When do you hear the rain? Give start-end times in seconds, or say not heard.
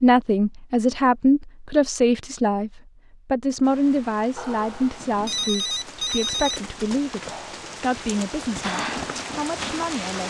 3.6-10.2.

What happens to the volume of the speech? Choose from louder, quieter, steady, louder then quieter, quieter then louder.
quieter.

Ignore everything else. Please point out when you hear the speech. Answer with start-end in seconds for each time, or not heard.
0.0-10.2.